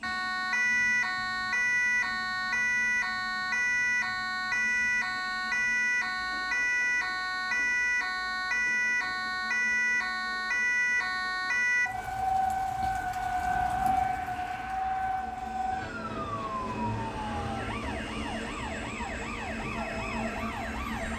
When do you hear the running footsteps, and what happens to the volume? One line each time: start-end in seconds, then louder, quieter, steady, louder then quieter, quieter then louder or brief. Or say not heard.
not heard.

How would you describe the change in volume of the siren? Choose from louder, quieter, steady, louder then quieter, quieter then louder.
quieter.